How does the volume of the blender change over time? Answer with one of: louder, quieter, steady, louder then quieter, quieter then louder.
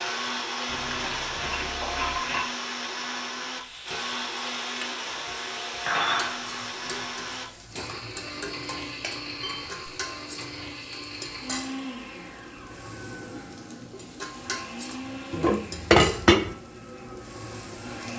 quieter.